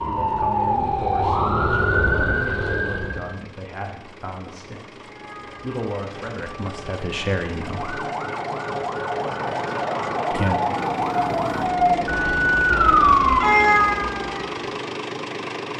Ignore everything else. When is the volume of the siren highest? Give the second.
13 s.